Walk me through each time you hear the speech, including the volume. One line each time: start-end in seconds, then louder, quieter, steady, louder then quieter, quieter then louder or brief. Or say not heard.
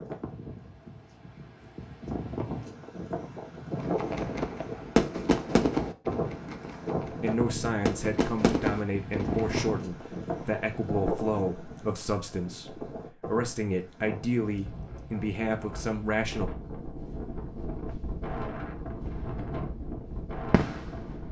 7.1-16.5 steady.